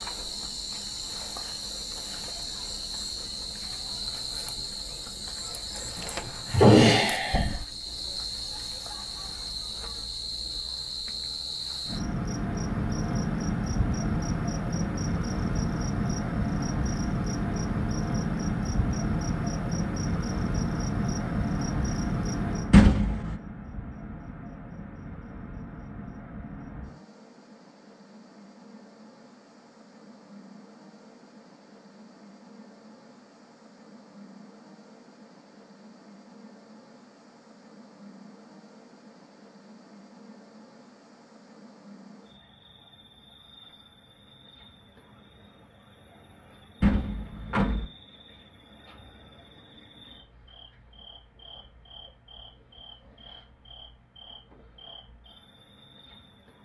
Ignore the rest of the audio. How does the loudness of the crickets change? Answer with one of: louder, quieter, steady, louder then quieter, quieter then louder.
louder then quieter.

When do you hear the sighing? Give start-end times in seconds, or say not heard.
5.8-7.5.